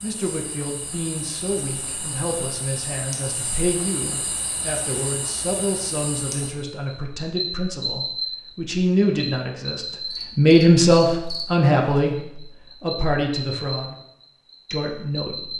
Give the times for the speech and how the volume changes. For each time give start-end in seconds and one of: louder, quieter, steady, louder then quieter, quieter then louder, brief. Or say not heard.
0.0-13.9 louder
14.7-15.5 brief.